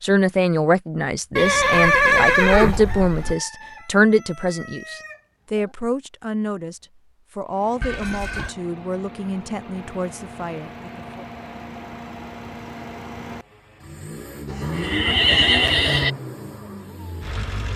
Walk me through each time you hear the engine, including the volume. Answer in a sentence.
The engine can be heard from 7.5 to 17.7 s, getting louder.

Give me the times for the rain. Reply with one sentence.
You can't hear the rain here.